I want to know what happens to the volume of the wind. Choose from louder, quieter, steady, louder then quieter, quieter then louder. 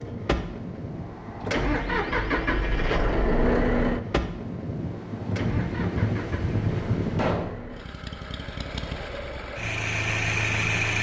louder.